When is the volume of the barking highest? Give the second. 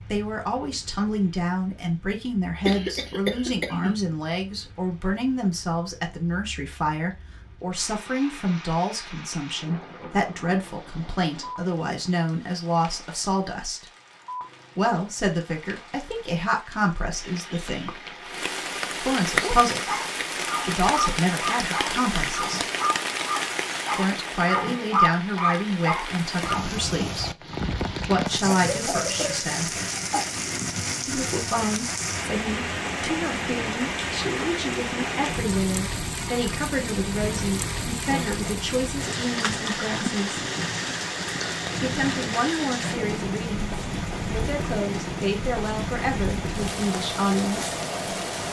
25 s.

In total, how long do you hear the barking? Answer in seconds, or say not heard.
7 s.